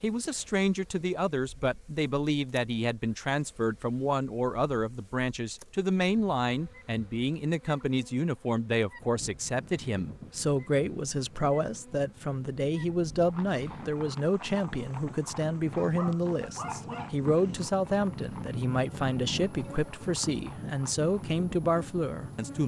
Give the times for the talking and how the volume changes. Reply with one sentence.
The talking can be heard from 0.0 to 22.6 s, at a steady volume.